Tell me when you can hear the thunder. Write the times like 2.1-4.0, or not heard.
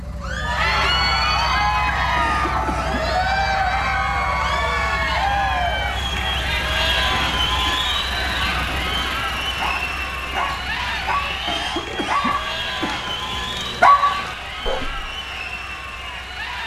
not heard.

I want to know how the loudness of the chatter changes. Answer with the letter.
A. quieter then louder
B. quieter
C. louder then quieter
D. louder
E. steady
B.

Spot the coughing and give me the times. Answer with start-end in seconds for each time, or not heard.
2.1-3.1, 11.4-13.1.